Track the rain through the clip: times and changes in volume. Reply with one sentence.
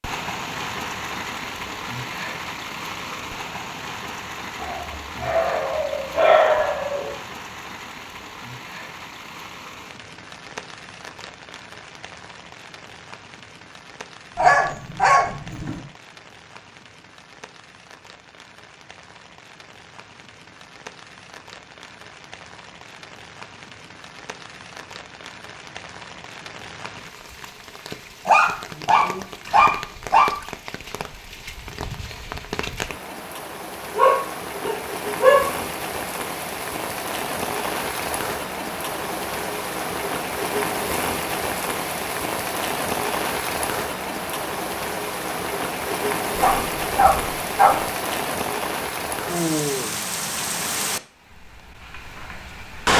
You can hear the rain from 0.0 to 52.9 s, getting quieter then louder.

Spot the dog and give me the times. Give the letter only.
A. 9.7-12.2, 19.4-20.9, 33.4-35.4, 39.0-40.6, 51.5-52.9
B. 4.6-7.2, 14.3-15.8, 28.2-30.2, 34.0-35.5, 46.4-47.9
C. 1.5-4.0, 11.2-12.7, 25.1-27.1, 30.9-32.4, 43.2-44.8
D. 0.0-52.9
B.